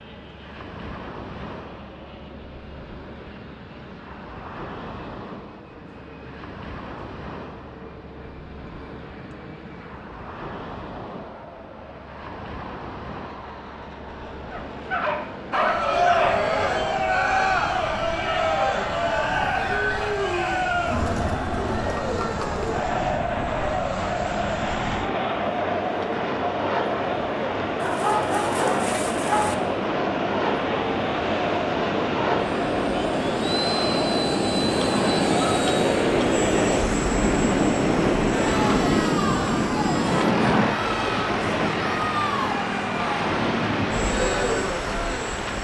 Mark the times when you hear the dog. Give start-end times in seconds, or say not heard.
14.5-16.4, 27.8-29.6.